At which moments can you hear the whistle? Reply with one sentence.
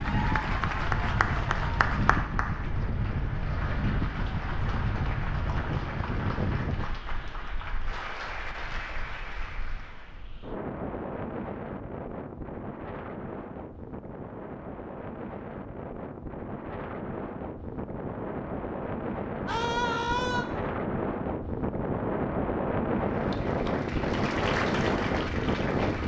You can't hear the whistle here.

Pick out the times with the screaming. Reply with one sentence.
The screaming can be heard from 19.4 to 20.4 s.